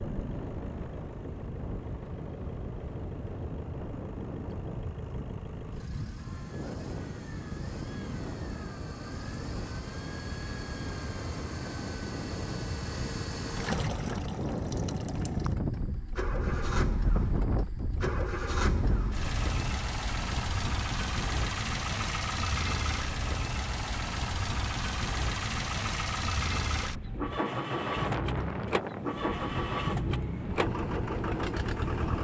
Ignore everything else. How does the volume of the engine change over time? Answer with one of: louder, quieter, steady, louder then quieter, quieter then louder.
louder.